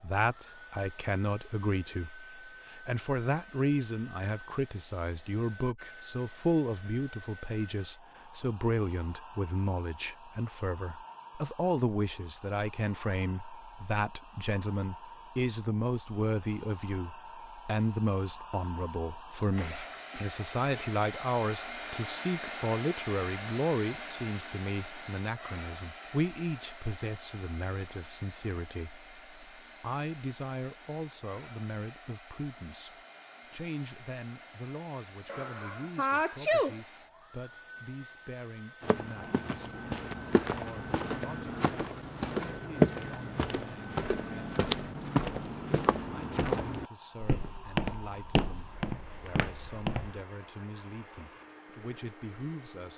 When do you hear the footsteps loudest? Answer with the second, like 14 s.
43 s.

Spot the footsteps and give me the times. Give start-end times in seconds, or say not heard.
38.8-50.2.